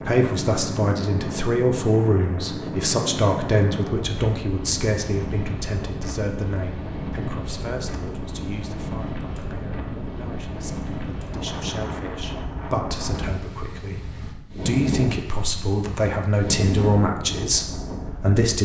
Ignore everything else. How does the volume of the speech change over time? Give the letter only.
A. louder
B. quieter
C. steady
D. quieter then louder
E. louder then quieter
D.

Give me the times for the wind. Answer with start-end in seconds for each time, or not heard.
0.0-18.5.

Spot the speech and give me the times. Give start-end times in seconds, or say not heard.
0.1-18.5.